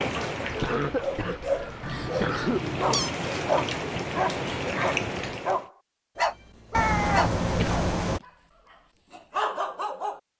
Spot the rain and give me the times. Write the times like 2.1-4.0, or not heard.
0.0-5.7.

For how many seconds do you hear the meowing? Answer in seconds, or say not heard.
3 s.